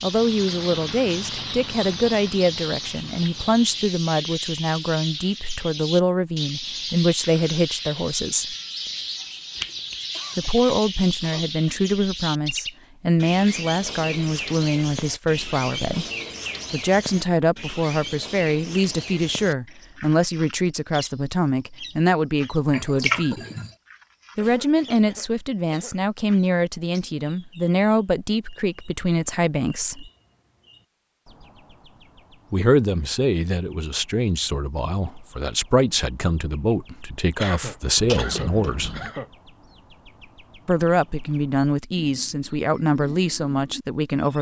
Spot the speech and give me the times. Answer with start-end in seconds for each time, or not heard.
0.0-8.6, 10.3-16.1, 16.7-23.4, 24.4-30.1, 32.5-38.9, 40.6-44.3.